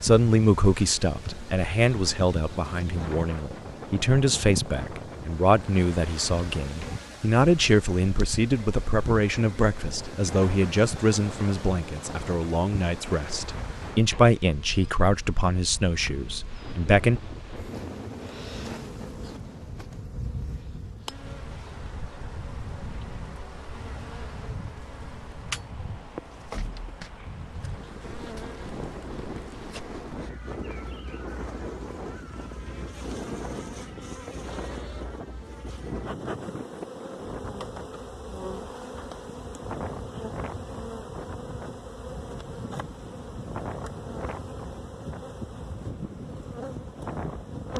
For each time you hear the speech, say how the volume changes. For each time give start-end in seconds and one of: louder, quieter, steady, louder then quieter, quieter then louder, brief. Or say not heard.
0.0-17.2 steady.